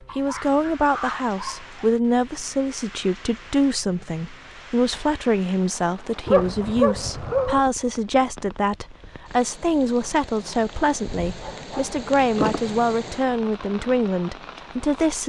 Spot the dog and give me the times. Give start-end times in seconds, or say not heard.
0.1-1.7, 6.2-7.6, 11.1-12.6.